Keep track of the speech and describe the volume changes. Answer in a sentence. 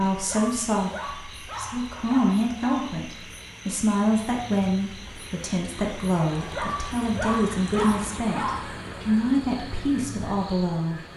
The loudness of the speech stays about the same.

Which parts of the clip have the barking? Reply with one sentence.
You can hear the barking from 0.1 to 3.0 s and from 6.3 to 8.8 s.